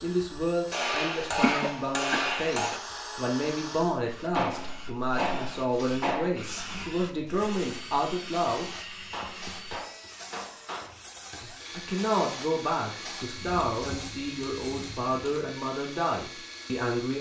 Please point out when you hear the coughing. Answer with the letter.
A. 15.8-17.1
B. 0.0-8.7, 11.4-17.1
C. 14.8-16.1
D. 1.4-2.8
D.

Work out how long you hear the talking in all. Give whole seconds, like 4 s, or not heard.
14 s.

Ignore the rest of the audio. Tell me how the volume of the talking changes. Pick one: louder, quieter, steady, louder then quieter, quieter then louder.
steady.